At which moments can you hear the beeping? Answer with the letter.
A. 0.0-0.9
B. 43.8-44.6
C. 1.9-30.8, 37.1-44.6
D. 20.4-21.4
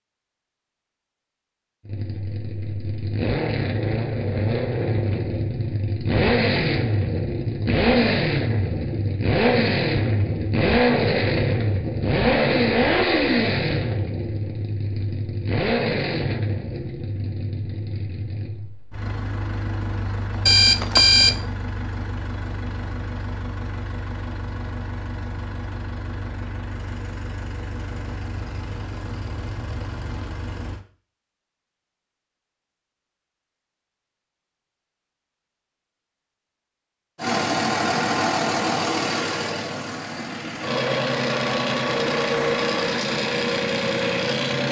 D.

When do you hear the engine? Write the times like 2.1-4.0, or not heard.
1.9-30.8, 37.1-44.6.